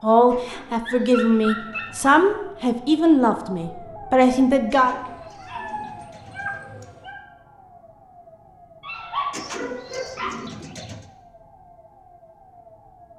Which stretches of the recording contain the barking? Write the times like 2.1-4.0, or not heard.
0.5-2.1, 4.8-7.2, 8.8-10.3.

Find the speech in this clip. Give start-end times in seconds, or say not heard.
0.0-5.0.